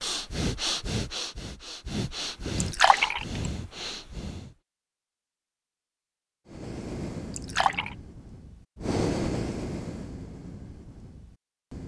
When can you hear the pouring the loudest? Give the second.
3 s.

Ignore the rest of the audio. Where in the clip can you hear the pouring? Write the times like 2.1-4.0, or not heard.
2.6-3.2, 7.3-8.0.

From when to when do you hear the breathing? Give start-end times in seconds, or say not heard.
0.0-4.5, 6.5-11.8.